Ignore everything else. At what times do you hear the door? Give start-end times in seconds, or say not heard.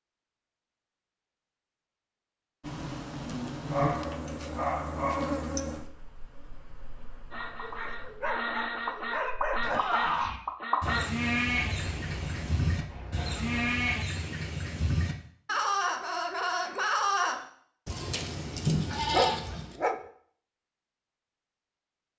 not heard.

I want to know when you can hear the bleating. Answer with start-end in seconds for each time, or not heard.
9.6-19.8.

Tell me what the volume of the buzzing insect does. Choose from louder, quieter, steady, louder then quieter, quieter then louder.
quieter.